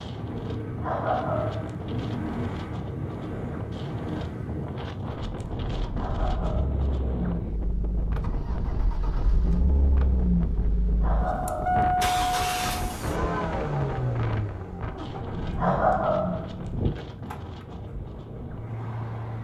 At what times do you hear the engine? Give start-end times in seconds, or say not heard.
0.1-19.4.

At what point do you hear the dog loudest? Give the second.
16 s.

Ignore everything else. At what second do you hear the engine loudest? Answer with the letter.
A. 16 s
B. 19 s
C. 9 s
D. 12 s
D.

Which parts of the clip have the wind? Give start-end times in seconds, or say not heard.
0.0-19.4.